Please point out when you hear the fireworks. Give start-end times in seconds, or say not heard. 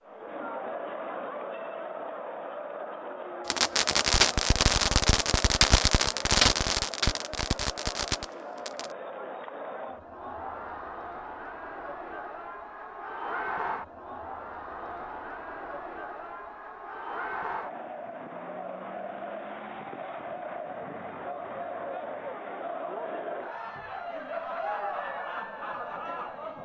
3.5-8.9.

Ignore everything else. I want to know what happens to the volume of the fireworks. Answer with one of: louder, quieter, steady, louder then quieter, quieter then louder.
quieter.